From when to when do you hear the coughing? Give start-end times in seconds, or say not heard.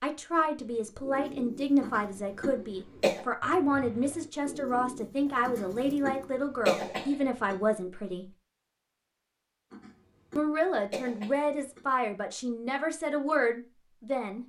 1.8-3.2, 5.5-7.5, 9.7-11.8.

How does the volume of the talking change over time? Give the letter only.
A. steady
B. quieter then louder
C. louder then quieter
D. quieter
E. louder
A.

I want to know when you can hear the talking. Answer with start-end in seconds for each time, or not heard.
0.0-8.3, 10.3-14.4.